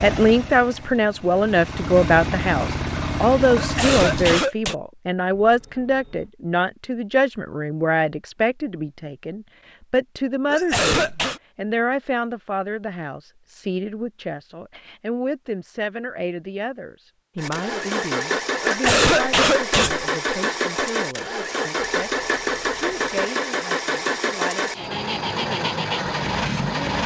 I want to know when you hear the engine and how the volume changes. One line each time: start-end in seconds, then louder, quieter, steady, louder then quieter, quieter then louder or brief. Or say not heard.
0.0-4.4 louder
17.4-27.0 steady.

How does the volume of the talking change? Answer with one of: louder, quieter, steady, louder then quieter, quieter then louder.
quieter.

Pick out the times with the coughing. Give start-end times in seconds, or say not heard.
3.5-4.8, 10.5-11.4, 18.6-20.1.